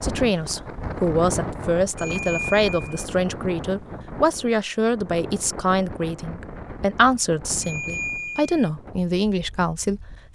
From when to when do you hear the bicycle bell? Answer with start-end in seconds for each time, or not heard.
1.9-2.9, 7.6-8.7.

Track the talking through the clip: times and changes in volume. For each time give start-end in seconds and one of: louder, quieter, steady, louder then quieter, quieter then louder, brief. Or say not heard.
0.0-10.3 steady.